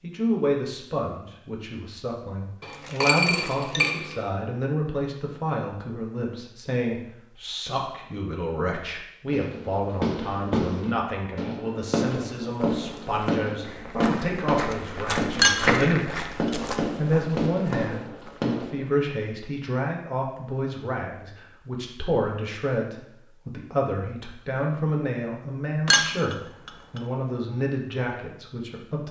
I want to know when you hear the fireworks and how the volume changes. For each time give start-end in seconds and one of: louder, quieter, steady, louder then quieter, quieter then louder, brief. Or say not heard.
9.3-19.1 steady.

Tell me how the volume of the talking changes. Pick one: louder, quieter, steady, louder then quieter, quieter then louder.
steady.